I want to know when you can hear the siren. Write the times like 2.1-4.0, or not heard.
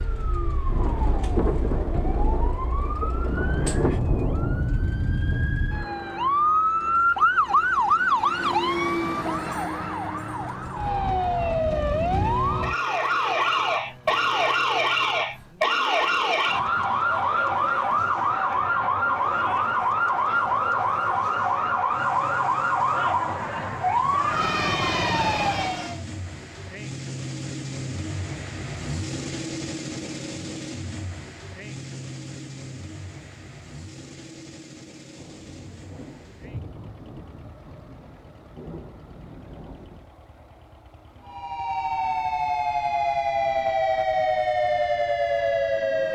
0.0-26.1, 41.2-46.1.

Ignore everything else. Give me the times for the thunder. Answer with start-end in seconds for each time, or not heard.
0.7-5.5, 35.1-40.1.